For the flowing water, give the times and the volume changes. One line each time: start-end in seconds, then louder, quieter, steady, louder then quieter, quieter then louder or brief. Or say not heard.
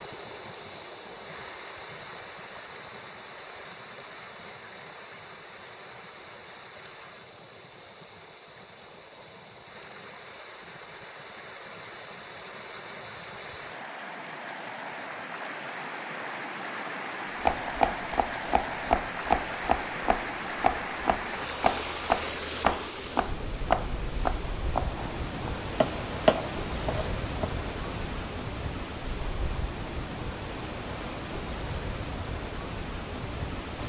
0.0-33.8 louder.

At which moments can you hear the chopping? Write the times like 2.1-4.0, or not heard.
17.4-27.5.